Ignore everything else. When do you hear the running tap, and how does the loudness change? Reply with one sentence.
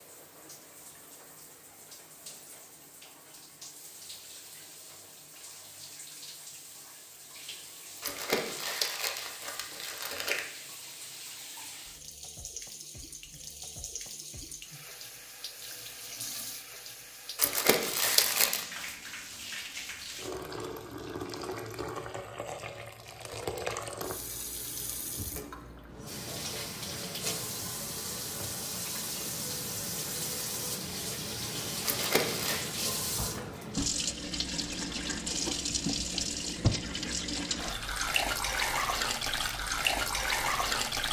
The running tap can be heard from 0.0 to 41.0 s, getting louder.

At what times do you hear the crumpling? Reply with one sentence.
The crumpling can be heard from 8.0 to 10.4 s, from 17.4 to 18.6 s and from 31.9 to 32.6 s.